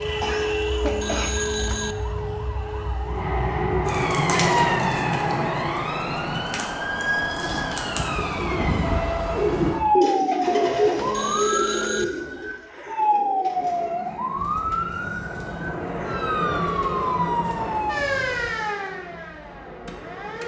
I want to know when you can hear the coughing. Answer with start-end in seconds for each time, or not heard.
0.1-1.3.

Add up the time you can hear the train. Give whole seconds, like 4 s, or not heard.
11 s.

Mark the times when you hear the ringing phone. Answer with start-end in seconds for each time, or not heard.
0.8-1.9, 10.9-12.1.